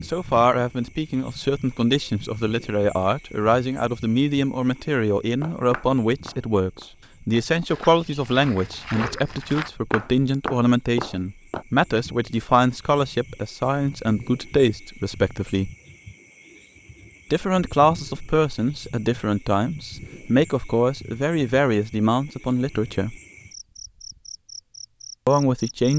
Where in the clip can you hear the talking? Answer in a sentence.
You can hear the talking from 0.0 to 15.7 s, from 17.3 to 23.1 s and from 25.2 to 25.9 s.